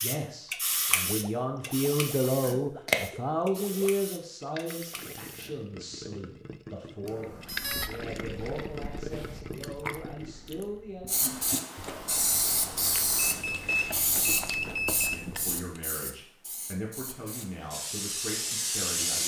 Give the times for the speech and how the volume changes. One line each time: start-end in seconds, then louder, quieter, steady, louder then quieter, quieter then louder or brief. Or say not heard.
0.0-11.2 quieter
15.1-19.2 steady.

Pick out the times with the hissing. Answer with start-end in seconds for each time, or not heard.
0.0-5.5, 11.1-19.2.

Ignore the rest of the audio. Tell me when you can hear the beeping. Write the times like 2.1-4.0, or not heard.
7.0-7.9, 13.2-15.2.